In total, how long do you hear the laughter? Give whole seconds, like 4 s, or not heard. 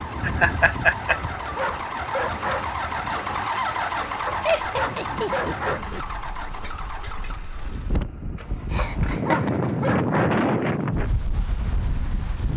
4 s.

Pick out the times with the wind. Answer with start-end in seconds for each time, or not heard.
0.0-12.5.